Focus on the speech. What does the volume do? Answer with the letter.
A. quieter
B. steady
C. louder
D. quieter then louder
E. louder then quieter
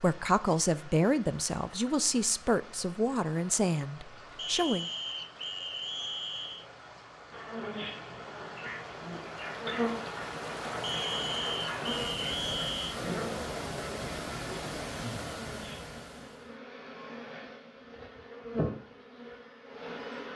A.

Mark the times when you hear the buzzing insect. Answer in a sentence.
You can hear the buzzing insect from 7.3 to 20.3 s.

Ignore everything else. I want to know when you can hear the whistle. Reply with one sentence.
You can hear the whistle from 4.3 to 6.7 s and from 10.8 to 12.9 s.